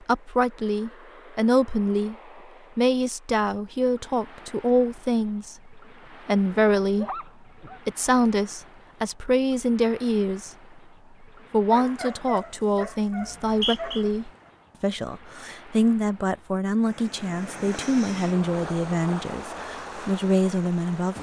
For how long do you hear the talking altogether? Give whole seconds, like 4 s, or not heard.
19 s.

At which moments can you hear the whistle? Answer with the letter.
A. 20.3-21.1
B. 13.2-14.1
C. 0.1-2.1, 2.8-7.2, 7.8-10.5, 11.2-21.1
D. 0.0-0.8
B.